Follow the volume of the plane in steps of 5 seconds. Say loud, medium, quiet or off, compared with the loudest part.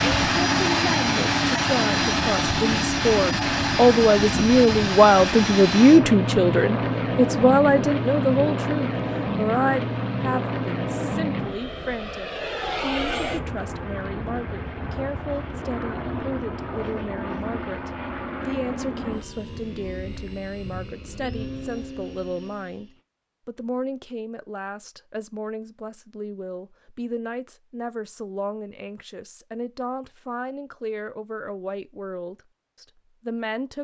loud, loud, medium, medium, quiet, off, off.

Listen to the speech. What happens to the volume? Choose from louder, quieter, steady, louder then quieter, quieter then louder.
quieter.